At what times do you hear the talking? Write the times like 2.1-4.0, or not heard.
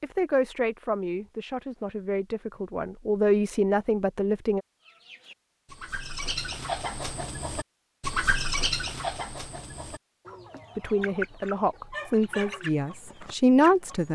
0.0-4.6, 10.8-14.0.